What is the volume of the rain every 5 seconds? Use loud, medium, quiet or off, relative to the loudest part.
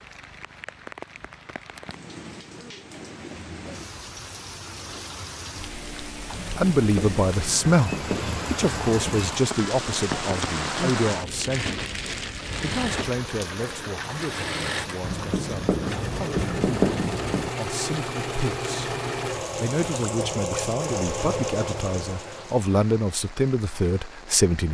medium, loud, loud, medium, quiet.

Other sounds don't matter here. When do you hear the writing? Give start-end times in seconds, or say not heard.
6.3-9.3, 15.0-17.5.